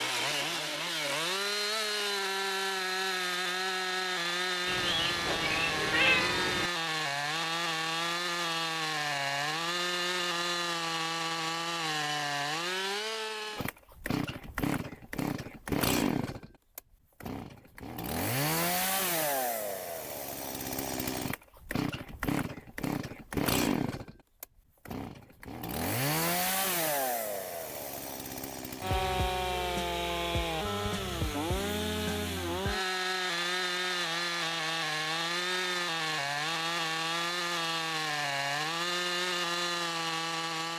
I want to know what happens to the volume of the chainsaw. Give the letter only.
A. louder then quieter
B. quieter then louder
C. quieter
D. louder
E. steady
E.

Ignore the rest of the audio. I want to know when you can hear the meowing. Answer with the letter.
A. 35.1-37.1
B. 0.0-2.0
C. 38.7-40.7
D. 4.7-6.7
D.